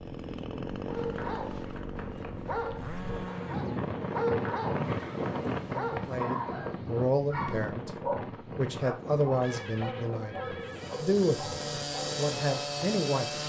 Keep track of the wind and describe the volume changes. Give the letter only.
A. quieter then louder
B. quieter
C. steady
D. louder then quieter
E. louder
D.